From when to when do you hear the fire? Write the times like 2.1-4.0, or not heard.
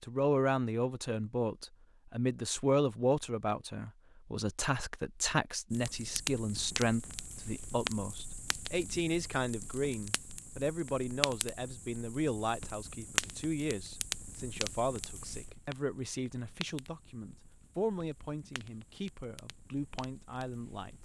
5.7-21.0.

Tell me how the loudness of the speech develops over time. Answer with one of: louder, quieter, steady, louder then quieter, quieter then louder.
quieter.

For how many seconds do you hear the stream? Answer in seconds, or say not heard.
not heard.